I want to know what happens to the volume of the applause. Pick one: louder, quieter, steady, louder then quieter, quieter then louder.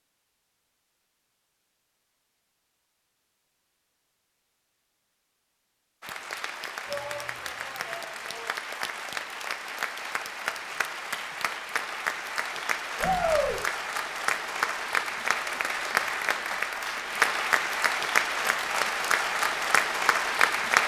louder.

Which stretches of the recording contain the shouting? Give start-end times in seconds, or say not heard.
6.8-8.6, 13.0-13.6.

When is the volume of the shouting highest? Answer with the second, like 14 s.
13 s.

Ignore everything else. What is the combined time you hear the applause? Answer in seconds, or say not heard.
15 s.